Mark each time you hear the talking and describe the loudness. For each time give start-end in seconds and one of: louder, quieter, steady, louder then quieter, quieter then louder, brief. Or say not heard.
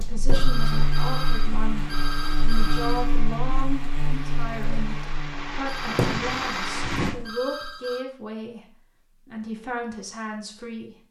0.0-10.9 steady.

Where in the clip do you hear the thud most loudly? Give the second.
6 s.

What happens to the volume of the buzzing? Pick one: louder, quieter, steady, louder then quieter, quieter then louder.
quieter.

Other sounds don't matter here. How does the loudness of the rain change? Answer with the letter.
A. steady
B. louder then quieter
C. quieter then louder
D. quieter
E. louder
E.